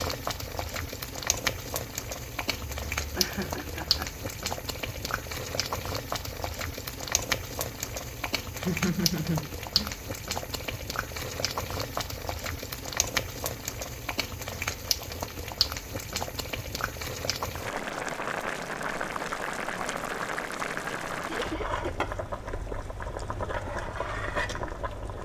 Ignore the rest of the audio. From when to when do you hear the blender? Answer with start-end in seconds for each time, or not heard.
not heard.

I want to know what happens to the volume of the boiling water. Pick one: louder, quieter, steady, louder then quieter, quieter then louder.
steady.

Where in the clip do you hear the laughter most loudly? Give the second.
9 s.